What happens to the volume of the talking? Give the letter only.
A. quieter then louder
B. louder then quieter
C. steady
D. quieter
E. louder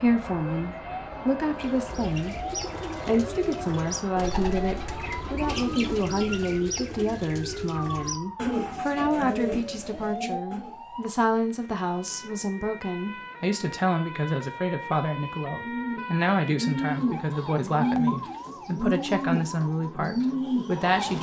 C.